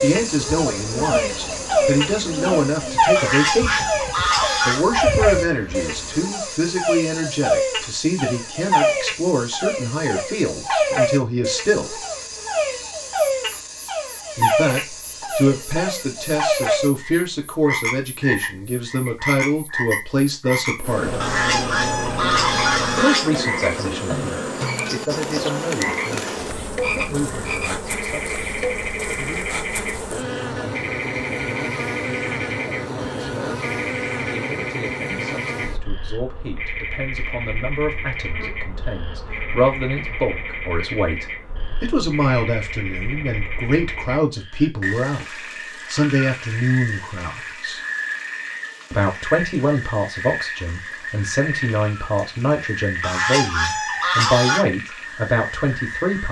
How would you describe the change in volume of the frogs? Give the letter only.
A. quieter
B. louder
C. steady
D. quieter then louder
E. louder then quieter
A.